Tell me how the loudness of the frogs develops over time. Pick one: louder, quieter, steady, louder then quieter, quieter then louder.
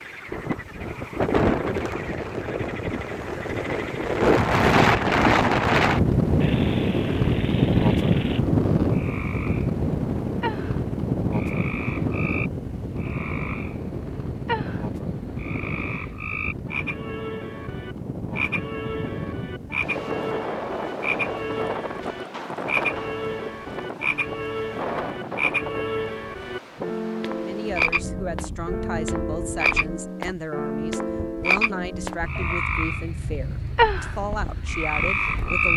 louder.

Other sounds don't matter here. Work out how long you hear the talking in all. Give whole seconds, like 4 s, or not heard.
8 s.